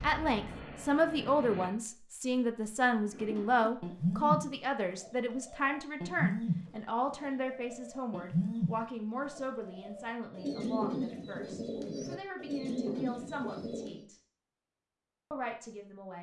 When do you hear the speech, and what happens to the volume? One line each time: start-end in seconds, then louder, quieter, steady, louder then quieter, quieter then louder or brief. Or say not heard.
0.0-14.2 quieter
15.3-16.1 brief.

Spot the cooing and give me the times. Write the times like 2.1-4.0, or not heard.
3.0-14.0.